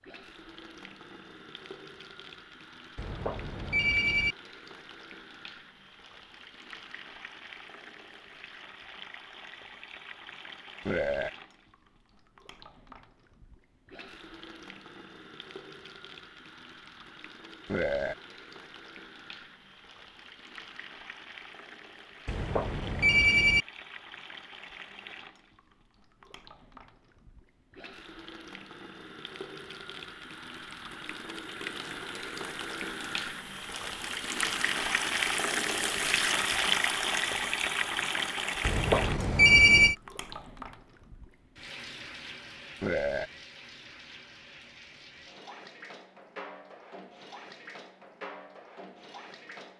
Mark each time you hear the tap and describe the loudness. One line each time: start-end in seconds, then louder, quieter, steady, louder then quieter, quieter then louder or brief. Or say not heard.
0.0-49.7 louder then quieter.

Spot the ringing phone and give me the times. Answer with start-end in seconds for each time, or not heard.
3.0-4.3, 22.2-23.6, 38.6-40.0.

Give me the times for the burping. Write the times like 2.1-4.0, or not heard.
10.8-11.3, 17.6-18.1, 42.8-43.3.